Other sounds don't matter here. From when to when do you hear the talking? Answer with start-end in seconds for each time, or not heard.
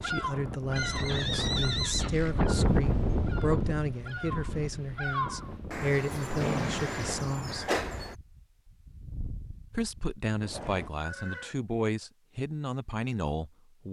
0.0-7.7, 9.7-13.8.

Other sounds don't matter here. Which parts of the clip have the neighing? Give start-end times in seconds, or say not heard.
0.8-2.5, 6.4-7.2, 10.5-11.6.